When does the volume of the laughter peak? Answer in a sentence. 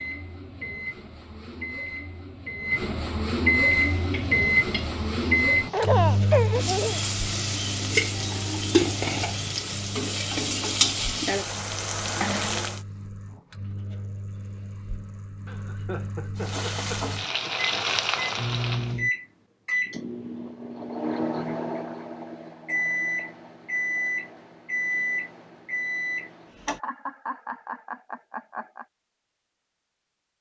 The volume of the laughter peaks at 6 seconds.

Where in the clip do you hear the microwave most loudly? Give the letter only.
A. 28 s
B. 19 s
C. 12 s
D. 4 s
D.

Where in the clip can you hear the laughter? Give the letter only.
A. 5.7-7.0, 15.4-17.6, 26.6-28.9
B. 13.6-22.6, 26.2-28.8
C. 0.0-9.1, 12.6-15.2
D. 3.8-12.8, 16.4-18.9
A.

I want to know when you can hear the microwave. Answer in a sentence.
The microwave can be heard from 0.0 to 26.8 s.